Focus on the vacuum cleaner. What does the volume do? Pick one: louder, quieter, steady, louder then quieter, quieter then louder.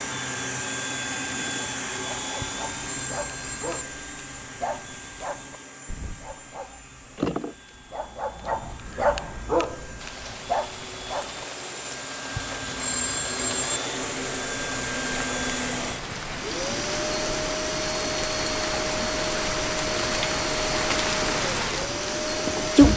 quieter then louder.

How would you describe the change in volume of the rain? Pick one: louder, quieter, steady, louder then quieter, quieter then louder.
louder.